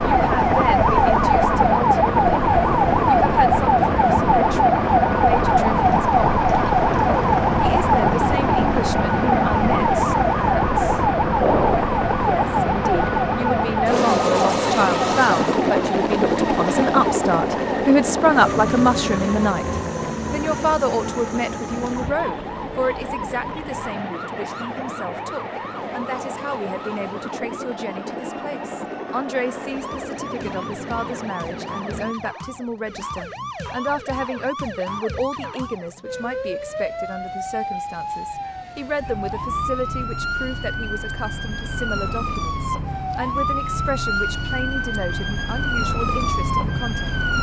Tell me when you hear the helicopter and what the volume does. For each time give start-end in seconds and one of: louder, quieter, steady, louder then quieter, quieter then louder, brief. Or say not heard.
0.0-32.1 quieter.